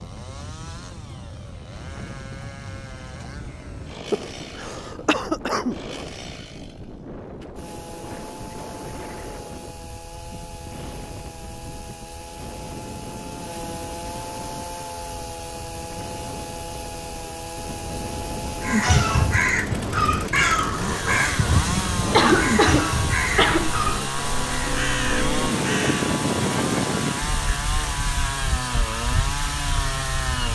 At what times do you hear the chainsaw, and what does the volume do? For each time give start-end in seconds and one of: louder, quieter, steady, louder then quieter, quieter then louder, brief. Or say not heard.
0.0-30.4 louder.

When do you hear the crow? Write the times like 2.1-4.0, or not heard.
18.6-26.1.